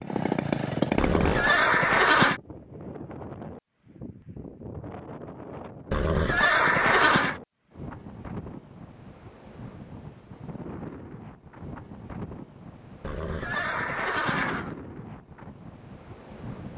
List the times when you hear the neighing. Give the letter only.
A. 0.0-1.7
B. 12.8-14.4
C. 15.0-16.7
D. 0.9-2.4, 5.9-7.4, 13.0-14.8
D.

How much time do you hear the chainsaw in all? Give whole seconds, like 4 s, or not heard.
2 s.